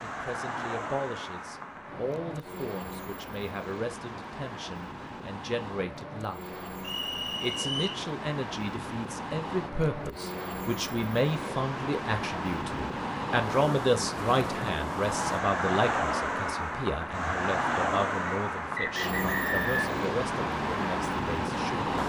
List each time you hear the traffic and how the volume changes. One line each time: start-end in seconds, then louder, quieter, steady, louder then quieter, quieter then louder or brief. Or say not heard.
0.0-22.0 louder.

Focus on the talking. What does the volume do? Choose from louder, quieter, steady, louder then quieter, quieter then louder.
louder then quieter.